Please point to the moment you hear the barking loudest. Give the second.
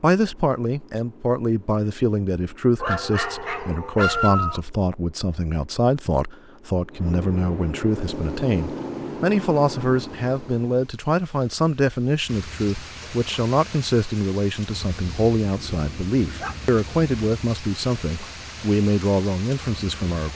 4 s.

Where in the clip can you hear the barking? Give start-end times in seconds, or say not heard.
2.8-4.6, 15.6-17.1.